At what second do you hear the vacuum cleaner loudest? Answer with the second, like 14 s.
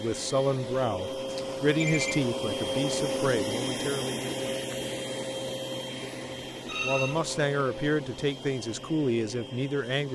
3 s.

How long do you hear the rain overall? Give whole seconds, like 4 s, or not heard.
not heard.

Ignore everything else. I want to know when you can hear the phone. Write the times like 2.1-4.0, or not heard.
1.2-2.3, 6.7-7.2.